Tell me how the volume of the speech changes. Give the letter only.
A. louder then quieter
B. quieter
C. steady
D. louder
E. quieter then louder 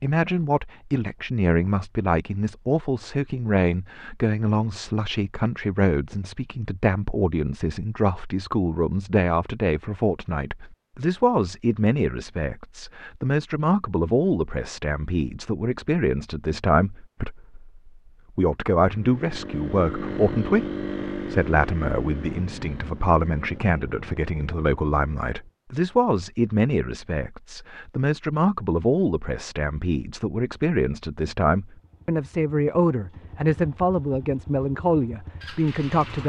C.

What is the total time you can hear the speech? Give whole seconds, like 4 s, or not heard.
36 s.